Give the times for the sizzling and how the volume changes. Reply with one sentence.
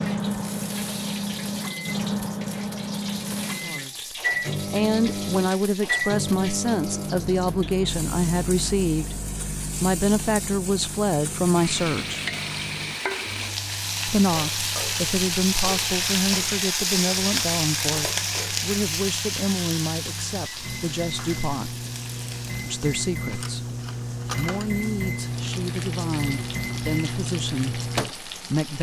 The sizzling can be heard from 0.0 to 28.7 s, getting louder then quieter.